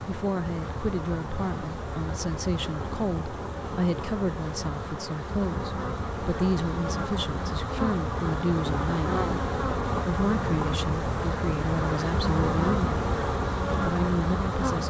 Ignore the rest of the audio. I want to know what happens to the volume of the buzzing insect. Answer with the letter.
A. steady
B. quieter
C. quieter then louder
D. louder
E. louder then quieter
D.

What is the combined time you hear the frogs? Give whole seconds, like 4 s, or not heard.
not heard.